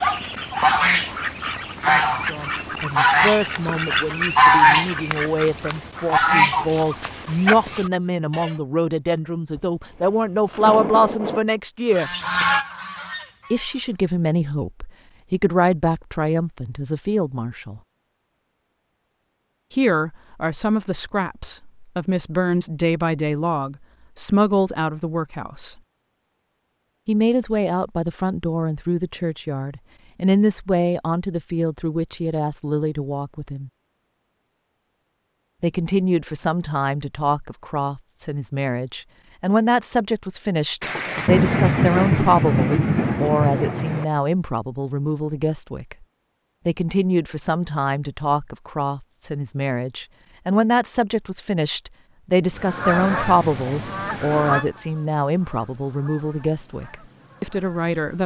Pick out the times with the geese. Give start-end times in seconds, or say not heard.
0.0-8.6, 11.9-13.9, 52.5-58.2.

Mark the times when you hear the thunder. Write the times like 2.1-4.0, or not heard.
9.6-11.4, 40.8-44.0.